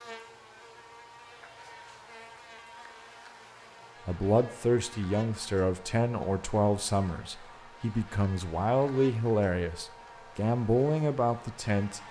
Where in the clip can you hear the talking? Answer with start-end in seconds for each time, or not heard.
4.0-12.0.